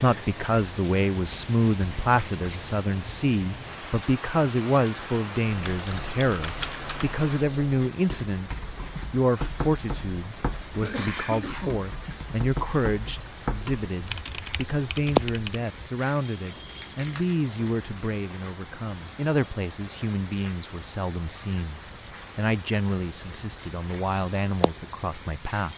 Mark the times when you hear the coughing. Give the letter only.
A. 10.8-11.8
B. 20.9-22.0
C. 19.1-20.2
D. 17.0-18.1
A.